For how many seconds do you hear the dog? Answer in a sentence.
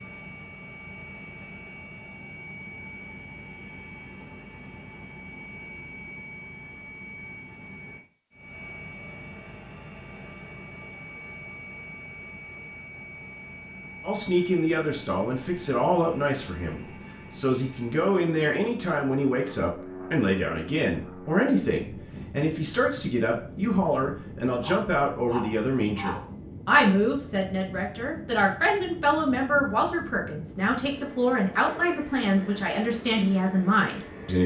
You can hear the dog for 2 seconds altogether.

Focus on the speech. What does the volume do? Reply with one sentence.
The loudness of the speech stays about the same.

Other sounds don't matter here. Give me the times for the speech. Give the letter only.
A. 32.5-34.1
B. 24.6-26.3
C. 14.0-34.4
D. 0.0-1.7
C.